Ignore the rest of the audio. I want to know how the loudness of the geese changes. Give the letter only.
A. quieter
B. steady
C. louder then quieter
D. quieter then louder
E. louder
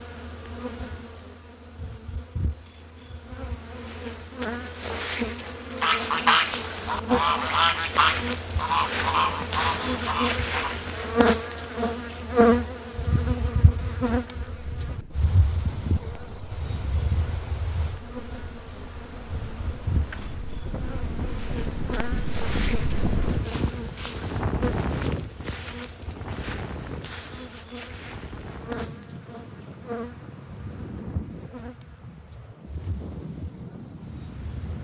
A.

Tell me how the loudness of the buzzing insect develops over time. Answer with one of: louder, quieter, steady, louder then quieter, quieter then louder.
louder then quieter.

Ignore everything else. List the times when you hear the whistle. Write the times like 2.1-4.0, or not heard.
not heard.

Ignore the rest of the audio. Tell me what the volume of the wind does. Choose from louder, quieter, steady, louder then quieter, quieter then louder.
louder then quieter.